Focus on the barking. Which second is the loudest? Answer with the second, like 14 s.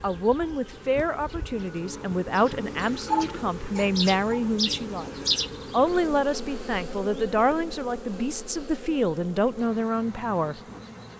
3 s.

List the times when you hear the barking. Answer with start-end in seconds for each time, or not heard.
2.8-4.5.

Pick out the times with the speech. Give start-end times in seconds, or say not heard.
0.0-5.1, 5.7-10.6.